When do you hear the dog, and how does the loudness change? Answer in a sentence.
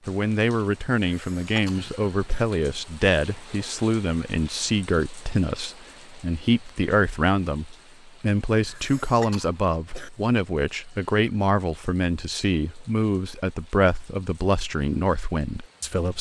You can't hear the dog here.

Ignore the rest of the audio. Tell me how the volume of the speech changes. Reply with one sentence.
The loudness of the speech stays about the same.